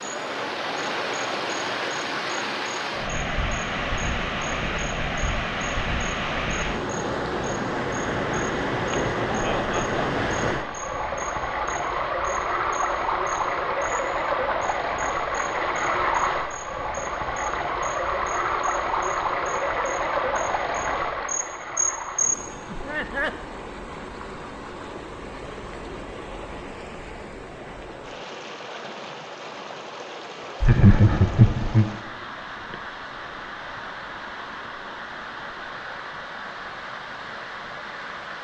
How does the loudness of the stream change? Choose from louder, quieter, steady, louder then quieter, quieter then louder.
quieter.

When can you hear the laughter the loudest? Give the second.
31 s.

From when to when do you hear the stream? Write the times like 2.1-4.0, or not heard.
0.0-38.3.